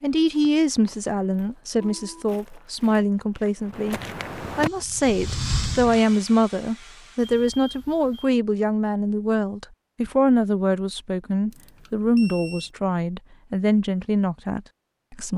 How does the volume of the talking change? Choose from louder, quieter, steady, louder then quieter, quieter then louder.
steady.